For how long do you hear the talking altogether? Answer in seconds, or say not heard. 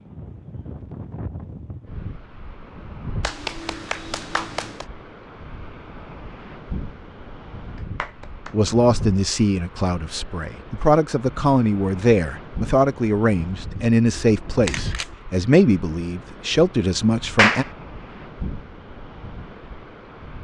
9 s.